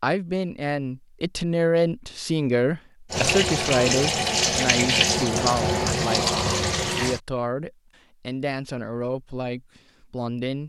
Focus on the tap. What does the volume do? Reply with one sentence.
The loudness of the tap stays about the same.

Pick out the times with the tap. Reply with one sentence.
The tap can be heard from 3.1 to 7.2 s.